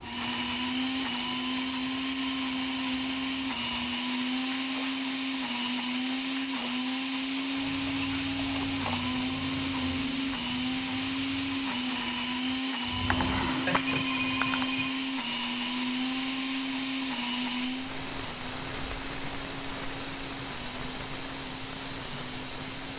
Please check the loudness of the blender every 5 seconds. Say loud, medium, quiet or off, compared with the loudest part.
loud, loud, loud, loud, quiet.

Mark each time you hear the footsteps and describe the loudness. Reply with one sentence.
You can't hear the footsteps here.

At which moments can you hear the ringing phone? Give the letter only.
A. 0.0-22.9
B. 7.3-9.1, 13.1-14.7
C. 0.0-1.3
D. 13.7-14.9
D.